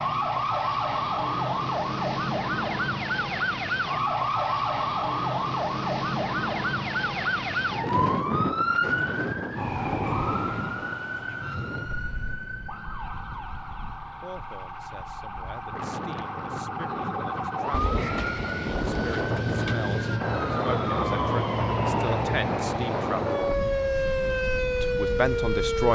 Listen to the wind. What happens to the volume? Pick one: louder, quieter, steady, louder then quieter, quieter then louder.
quieter then louder.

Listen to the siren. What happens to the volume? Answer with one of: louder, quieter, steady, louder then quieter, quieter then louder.
quieter then louder.